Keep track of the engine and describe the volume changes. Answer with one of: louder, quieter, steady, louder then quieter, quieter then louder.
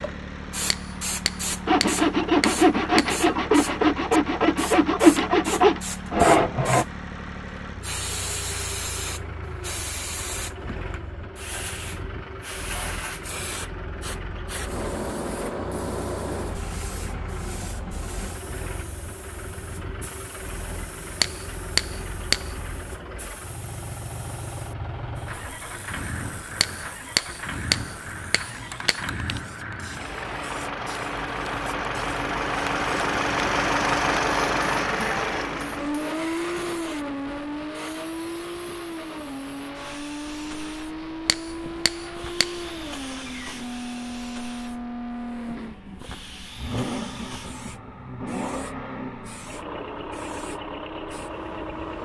louder then quieter.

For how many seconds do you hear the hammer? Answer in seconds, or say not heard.
8 s.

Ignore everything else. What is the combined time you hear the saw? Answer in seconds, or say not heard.
5 s.